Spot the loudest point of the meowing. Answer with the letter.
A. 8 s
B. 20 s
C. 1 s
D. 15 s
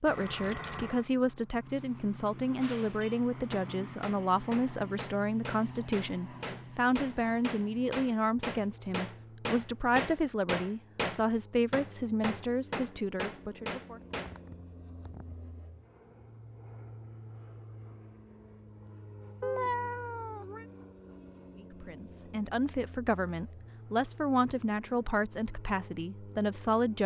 B.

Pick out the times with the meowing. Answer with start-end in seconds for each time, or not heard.
0.1-1.1, 14.0-15.3, 19.4-20.6.